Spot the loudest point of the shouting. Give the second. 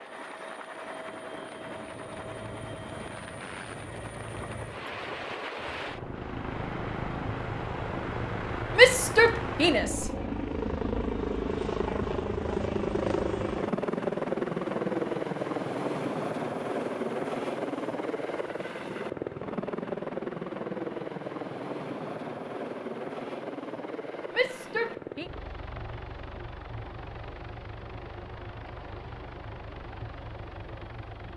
9 s.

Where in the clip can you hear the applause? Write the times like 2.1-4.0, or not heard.
not heard.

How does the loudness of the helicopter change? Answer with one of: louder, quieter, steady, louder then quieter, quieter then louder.
louder then quieter.